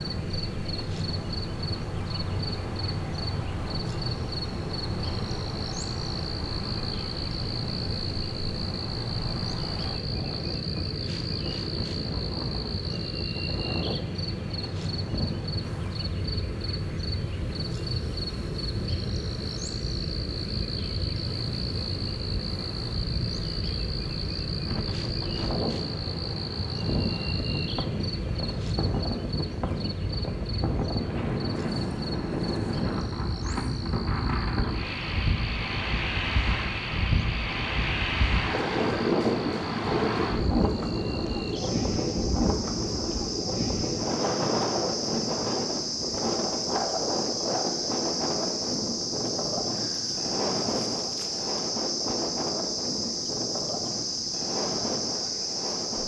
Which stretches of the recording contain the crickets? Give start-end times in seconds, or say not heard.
0.0-56.0.